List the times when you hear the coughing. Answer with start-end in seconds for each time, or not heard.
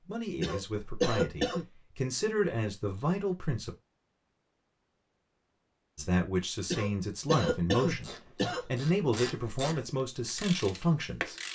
0.4-1.6, 6.7-8.7.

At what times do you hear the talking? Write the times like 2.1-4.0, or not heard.
0.1-3.7, 6.0-11.3.